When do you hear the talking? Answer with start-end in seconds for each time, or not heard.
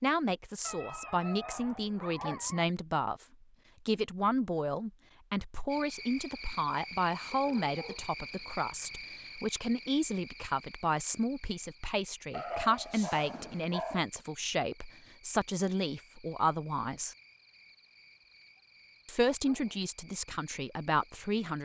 0.0-3.2, 3.9-17.1, 19.1-21.6.